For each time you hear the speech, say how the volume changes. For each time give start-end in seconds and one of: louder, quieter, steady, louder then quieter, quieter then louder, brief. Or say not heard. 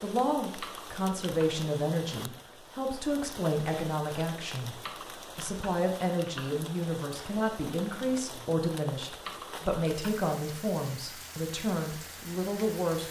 0.0-13.0 steady.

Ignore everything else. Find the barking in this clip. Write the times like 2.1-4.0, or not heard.
not heard.